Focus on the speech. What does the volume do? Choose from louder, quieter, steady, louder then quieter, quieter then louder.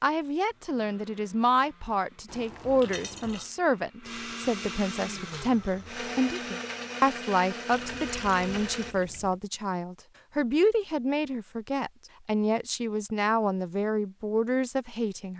steady.